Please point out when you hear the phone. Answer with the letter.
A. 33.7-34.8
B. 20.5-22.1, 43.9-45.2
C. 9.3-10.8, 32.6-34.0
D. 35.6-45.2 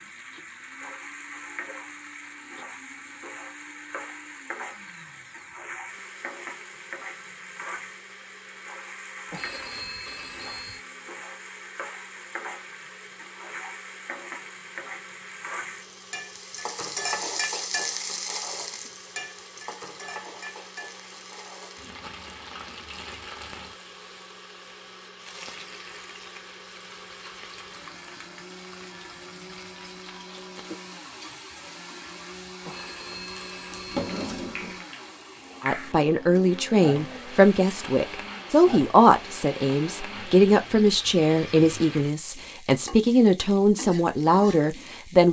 C.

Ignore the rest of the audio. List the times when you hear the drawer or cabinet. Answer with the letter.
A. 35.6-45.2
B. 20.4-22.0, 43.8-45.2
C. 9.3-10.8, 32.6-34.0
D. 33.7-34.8
D.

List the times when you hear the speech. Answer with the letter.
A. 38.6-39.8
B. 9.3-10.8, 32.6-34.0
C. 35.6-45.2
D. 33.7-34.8
C.